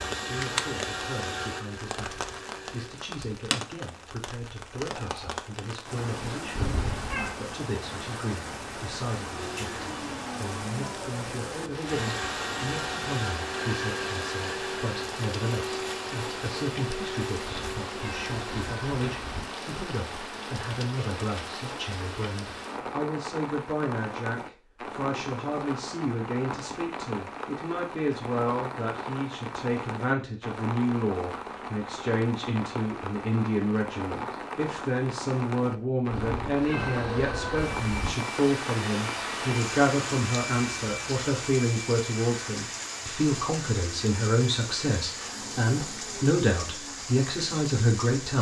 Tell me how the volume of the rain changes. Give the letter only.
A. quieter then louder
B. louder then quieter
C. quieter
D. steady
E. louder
D.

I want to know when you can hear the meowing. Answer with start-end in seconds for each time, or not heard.
6.5-7.3, 17.4-19.4, 36.1-38.1.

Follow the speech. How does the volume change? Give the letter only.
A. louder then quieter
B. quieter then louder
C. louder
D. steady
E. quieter
C.